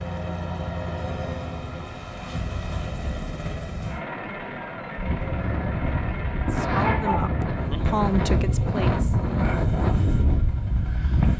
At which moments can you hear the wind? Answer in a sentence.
You can hear the wind from 5.0 to 11.3 s.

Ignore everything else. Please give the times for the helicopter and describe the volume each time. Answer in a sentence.
The helicopter can be heard from 0.0 to 11.3 s, getting quieter.